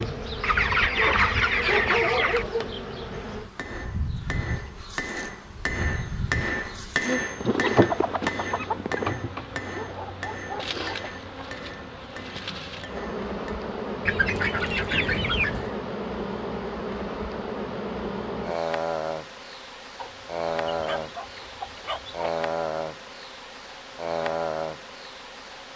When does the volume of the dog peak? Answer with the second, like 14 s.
2 s.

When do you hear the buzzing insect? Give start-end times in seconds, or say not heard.
0.0-25.7.